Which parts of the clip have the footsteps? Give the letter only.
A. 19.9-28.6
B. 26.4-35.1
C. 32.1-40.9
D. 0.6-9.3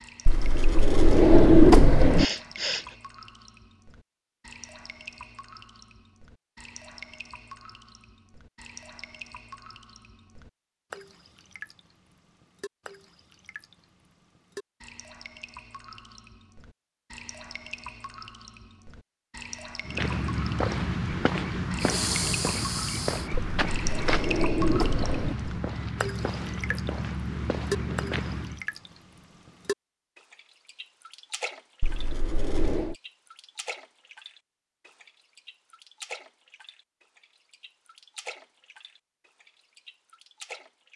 A.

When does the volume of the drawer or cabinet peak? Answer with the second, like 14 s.
2 s.